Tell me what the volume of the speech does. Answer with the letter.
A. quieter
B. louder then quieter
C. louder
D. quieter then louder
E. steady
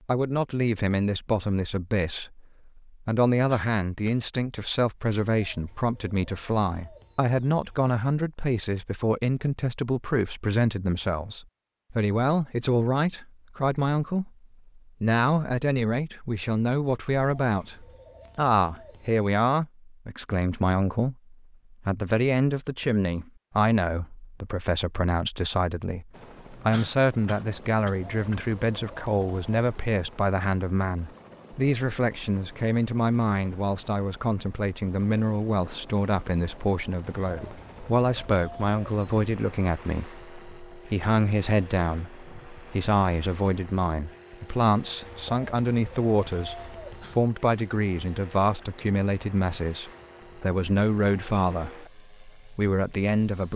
E.